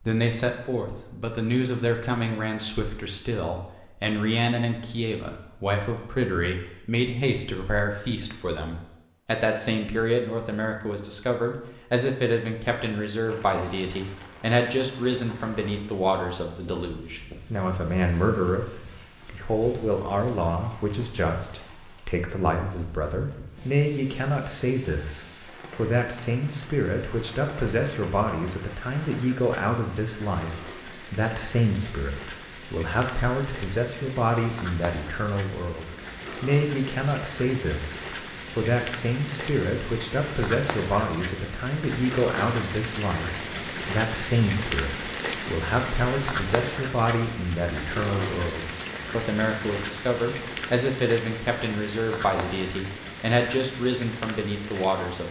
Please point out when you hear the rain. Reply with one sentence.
You can hear the rain from 13.2 to 55.2 s.